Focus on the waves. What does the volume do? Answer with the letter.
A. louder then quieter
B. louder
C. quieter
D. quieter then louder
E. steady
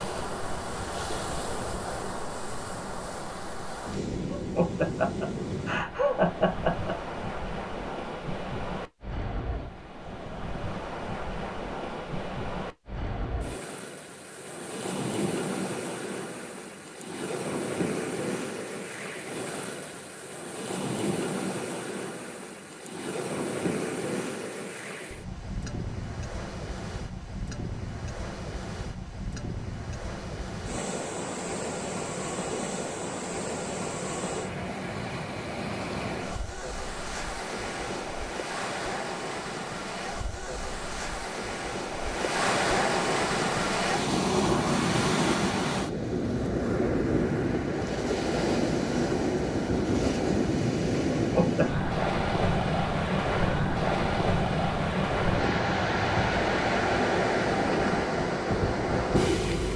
B.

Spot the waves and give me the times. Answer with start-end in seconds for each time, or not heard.
0.0-59.7.